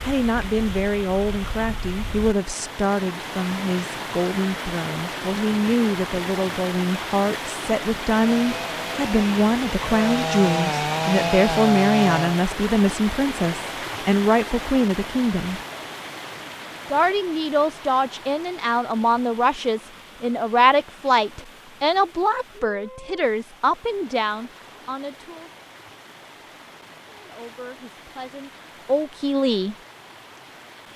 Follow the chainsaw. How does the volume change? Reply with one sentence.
The loudness of the chainsaw goes up.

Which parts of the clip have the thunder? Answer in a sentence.
You can't hear the thunder here.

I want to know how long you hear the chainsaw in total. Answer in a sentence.
The chainsaw can be heard for 4 seconds in total.